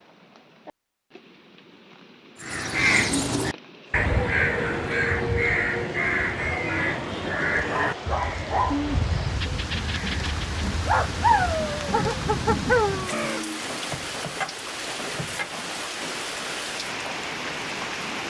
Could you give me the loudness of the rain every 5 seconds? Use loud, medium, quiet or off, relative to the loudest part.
quiet, medium, loud, loud.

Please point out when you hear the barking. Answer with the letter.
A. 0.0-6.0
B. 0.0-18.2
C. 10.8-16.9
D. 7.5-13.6
D.